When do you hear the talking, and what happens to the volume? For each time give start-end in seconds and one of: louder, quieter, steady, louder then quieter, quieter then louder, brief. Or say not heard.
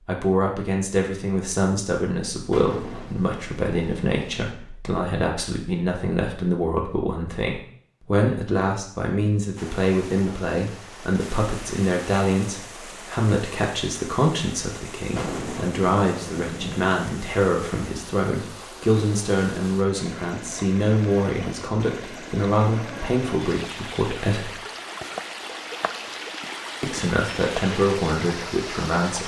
0.1-24.6 steady
26.8-29.2 brief.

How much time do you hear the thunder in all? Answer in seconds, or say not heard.
4 s.